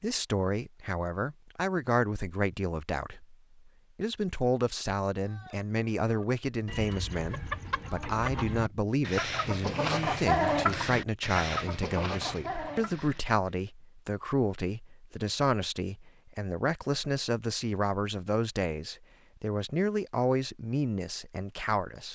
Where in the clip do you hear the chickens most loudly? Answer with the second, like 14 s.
10 s.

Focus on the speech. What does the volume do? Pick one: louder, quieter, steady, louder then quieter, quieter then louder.
steady.